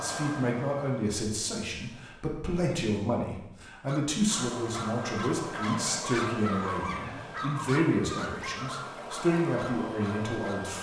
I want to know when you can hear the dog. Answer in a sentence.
You can hear the dog from 3.9 to 10.7 s.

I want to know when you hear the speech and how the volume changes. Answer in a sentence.
You can hear the speech from 0.0 to 10.7 s, at a steady volume.